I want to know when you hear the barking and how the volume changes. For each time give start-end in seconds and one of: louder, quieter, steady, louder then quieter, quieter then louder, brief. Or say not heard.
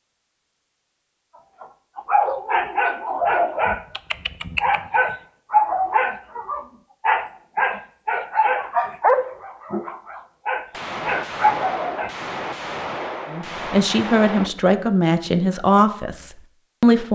1.6-12.1 steady.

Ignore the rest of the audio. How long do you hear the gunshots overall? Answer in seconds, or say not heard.
4 s.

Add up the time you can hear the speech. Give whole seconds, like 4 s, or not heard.
4 s.